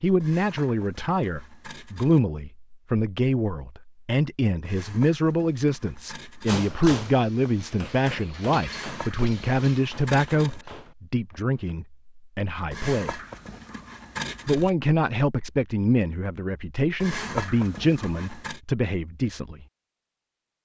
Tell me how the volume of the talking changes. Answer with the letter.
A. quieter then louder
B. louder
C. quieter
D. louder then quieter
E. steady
E.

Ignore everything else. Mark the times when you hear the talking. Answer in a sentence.
You can hear the talking from 0.0 to 13.2 s and from 14.4 to 19.6 s.